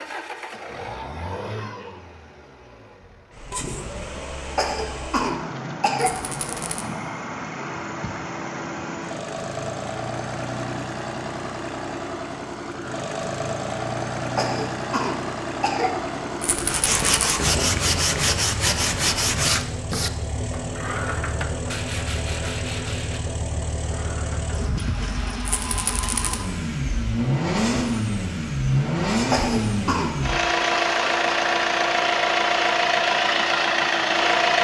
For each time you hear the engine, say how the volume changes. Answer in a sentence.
The engine can be heard from 0.0 to 34.5 s, getting louder.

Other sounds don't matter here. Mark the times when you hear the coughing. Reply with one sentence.
You can hear the coughing from 4.5 to 6.3 s, from 14.3 to 16.1 s and from 29.3 to 30.1 s.